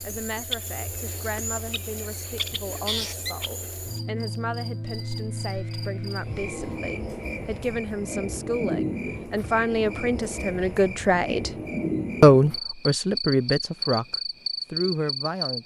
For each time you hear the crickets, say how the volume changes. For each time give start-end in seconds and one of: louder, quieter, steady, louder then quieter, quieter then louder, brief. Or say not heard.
0.0-15.6 steady.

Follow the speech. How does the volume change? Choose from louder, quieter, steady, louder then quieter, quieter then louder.
louder.